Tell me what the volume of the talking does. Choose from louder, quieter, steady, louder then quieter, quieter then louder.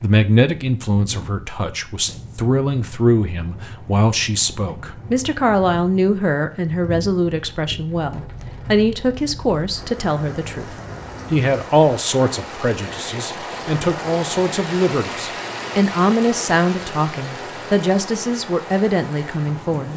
steady.